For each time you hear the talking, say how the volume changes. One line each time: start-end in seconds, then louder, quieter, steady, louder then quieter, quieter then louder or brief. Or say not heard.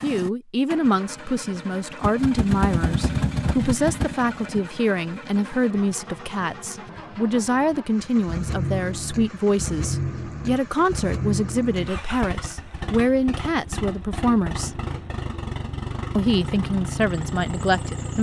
0.0-14.8 steady
16.1-18.1 brief.